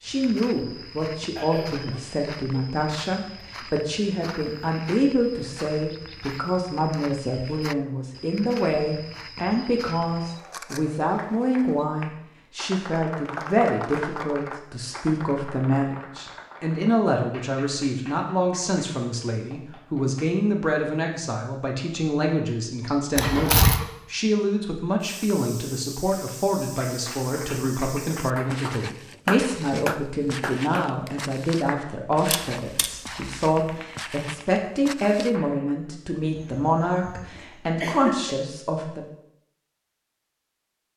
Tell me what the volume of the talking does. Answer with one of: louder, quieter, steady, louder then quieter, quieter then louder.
steady.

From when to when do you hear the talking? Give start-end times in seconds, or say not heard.
0.0-39.0.